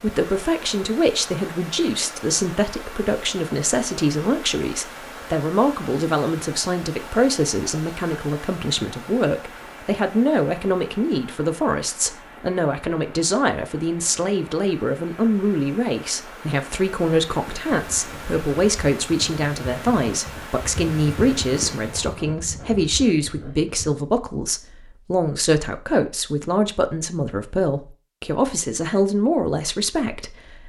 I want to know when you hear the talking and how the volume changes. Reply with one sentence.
You can hear the talking from 0.0 to 30.6 s, at a steady volume.